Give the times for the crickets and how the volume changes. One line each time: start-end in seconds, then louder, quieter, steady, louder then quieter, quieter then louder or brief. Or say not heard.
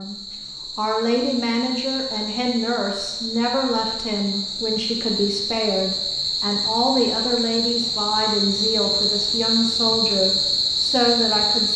0.0-11.7 louder.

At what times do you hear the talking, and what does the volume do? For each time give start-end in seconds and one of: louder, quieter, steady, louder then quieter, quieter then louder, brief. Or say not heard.
0.0-11.7 steady.